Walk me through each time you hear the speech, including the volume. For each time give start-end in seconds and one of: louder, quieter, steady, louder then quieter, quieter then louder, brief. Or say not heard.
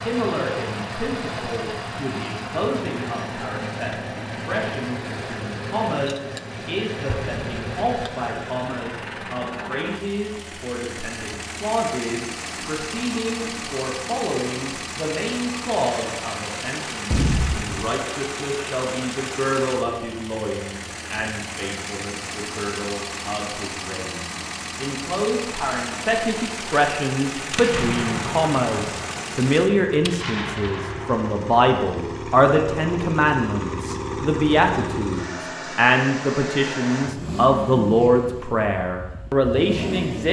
0.1-40.2 louder.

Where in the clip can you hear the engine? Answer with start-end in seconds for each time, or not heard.
0.0-40.2.